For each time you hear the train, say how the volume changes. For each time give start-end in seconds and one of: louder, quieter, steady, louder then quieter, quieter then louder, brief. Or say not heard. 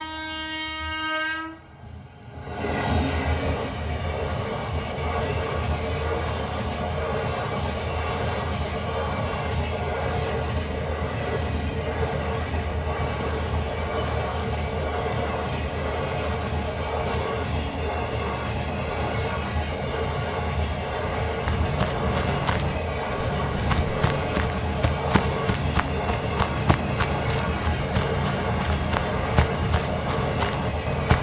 0.0-31.1 steady.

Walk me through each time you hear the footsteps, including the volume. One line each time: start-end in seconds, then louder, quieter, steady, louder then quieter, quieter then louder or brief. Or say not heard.
21.4-31.1 steady.